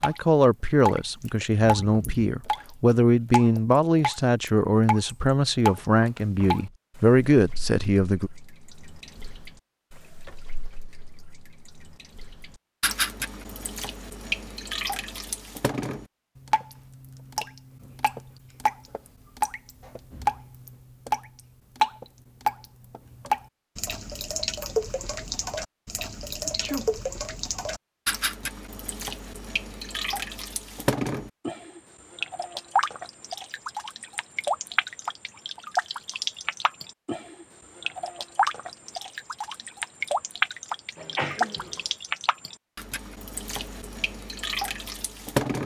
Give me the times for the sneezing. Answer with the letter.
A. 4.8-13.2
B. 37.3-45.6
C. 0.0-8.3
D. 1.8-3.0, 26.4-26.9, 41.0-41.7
D.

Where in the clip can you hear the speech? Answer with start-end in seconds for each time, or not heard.
0.0-8.3.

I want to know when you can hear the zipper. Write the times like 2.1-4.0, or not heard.
not heard.